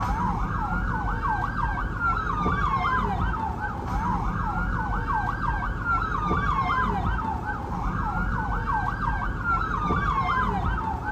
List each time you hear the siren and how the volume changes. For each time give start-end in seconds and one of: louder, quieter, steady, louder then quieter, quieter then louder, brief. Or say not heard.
0.0-11.0 steady.